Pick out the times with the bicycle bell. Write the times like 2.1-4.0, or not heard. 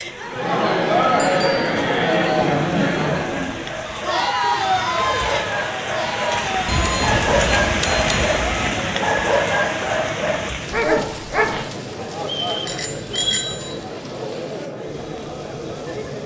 1.2-1.6, 6.7-8.7, 12.7-13.8.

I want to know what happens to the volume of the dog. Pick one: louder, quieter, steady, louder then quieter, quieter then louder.
louder.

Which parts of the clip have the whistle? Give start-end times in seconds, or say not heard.
12.2-13.5.